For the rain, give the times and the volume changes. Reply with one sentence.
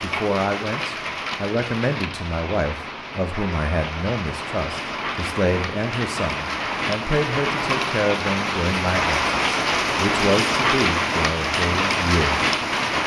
You can hear the rain from 0.0 to 13.0 s, getting louder.